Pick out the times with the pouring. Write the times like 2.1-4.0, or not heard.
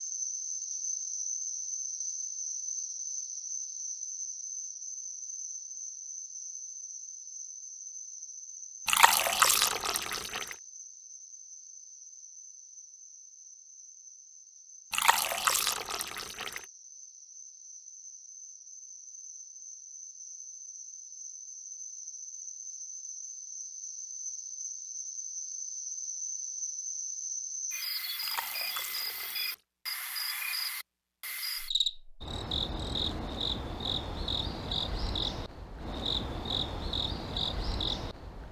8.8-10.6, 14.9-16.6, 28.2-29.6.